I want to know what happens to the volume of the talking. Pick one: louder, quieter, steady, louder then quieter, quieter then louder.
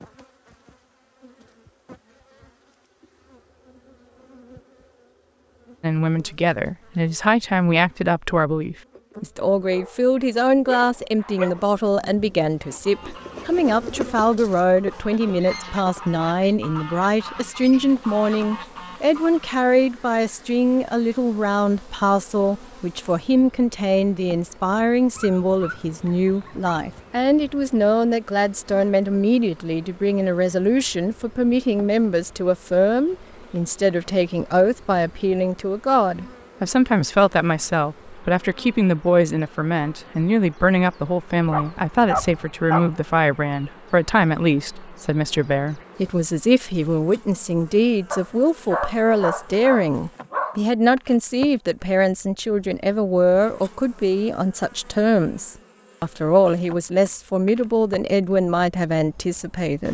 steady.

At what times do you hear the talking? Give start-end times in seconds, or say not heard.
5.8-59.8.